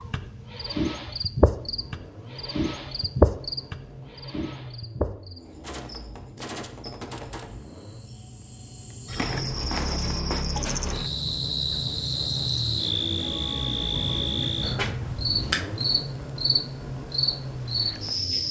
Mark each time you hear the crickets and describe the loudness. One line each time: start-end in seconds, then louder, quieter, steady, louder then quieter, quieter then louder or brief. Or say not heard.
0.0-18.4 quieter then louder.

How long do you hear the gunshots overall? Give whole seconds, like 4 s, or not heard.
2 s.